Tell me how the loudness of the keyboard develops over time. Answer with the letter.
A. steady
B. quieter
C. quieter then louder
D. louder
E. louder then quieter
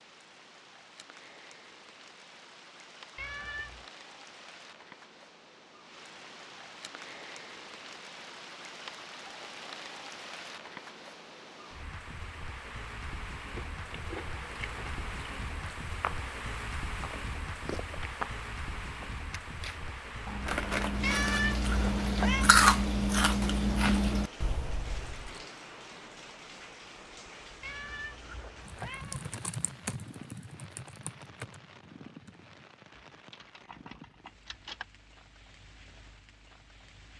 B.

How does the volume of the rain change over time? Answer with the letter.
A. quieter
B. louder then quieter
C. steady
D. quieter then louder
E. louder
B.